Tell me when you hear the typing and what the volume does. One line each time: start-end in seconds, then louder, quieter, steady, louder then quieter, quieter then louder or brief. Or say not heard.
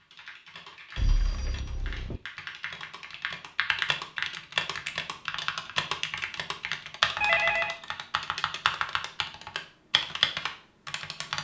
0.0-11.4 louder.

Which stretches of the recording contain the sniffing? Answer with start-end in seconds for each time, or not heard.
not heard.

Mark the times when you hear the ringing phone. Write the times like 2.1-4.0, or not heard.
0.9-2.2, 7.2-7.8.